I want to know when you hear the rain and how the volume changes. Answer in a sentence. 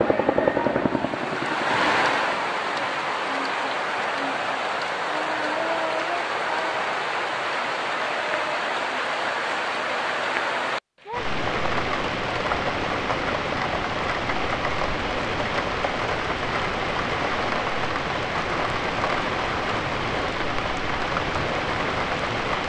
The rain can be heard from 0.0 to 22.6 s, at a steady volume.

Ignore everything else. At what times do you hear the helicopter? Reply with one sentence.
You can hear the helicopter from 0.0 to 2.5 s.